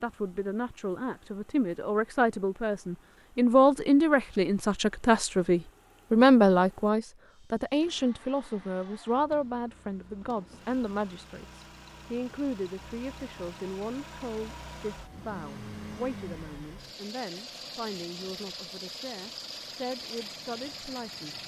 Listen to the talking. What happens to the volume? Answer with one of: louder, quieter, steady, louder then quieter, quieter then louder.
quieter.